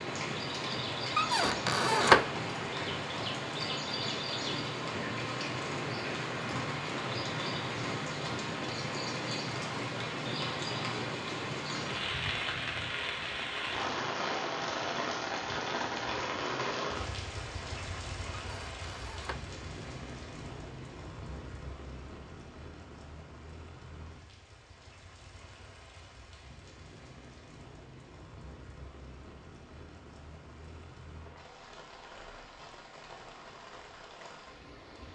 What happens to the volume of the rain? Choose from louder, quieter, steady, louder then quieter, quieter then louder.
quieter.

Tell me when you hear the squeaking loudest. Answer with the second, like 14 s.
2 s.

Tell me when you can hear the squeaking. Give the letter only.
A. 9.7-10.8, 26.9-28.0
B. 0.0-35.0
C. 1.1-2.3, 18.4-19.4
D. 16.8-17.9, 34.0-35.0
C.